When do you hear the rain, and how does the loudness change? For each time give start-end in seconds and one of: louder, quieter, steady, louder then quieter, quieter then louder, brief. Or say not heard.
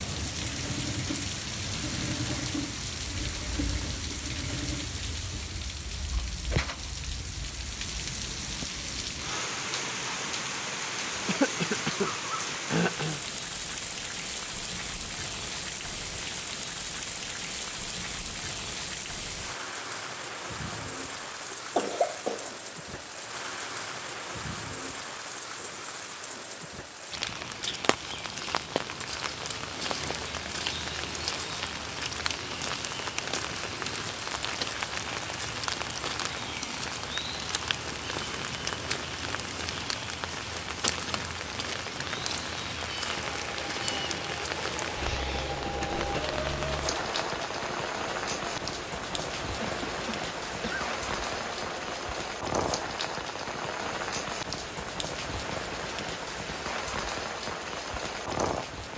0.0-58.9 steady.